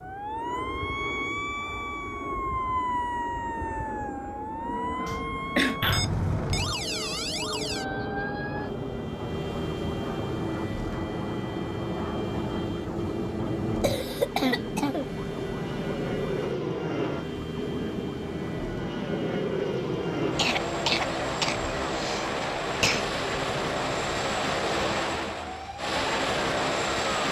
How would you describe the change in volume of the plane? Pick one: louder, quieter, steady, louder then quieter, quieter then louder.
louder.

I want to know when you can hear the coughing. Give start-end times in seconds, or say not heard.
5.0-5.8, 13.8-15.1, 20.4-23.1.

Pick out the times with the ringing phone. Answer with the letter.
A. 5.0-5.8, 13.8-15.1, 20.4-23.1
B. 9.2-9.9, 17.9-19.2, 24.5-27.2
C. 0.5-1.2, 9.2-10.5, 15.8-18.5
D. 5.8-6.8
D.